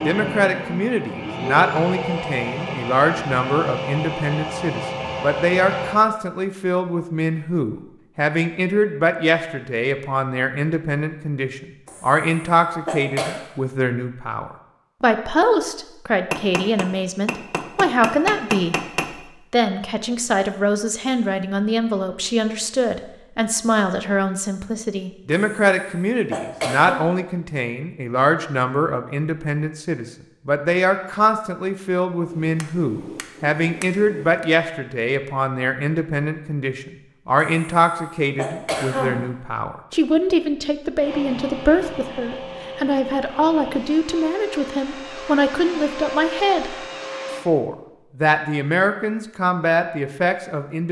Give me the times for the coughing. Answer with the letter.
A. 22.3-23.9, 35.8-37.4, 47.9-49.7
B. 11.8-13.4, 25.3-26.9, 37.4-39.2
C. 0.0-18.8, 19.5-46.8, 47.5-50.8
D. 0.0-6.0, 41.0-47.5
B.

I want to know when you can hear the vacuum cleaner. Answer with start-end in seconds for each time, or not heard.
0.0-6.0, 41.0-47.5.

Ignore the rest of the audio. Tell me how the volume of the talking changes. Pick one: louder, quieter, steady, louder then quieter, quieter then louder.
steady.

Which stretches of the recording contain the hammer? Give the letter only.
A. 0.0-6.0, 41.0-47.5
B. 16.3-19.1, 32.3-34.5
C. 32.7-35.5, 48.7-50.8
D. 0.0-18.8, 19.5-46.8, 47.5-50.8
B.